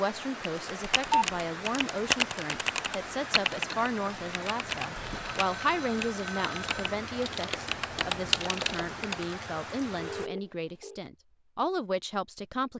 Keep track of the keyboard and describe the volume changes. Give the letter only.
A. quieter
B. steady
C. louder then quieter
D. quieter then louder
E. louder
D.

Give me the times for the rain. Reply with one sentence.
You can hear the rain from 0.0 to 10.3 s.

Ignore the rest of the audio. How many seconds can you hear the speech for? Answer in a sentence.
The speech can be heard for 13 seconds in total.